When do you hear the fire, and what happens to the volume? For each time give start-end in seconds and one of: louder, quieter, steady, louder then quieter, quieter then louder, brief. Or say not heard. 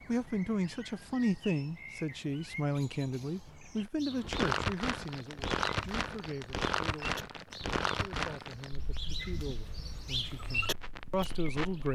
4.2-11.8 quieter.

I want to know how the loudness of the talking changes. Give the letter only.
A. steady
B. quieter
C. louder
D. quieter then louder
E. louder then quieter
D.